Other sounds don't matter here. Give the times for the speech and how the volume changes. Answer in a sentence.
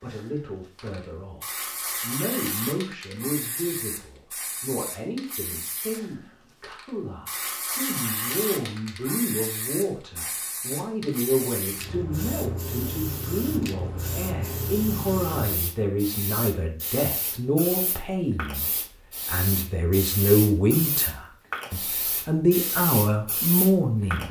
You can hear the speech from 0.0 to 24.2 s, getting louder.